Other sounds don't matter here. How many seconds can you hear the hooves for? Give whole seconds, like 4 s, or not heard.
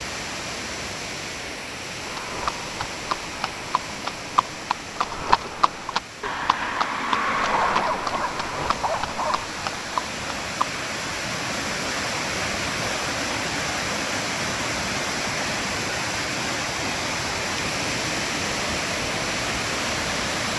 9 s.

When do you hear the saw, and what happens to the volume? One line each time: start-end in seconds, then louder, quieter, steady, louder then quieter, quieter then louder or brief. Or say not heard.
not heard.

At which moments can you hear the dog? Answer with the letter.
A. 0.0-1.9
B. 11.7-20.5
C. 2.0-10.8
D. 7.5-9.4
D.